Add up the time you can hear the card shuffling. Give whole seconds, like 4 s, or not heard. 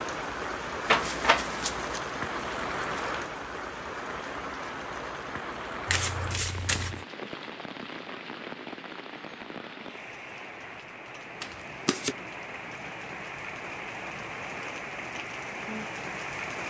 3 s.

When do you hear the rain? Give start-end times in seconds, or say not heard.
0.0-16.6.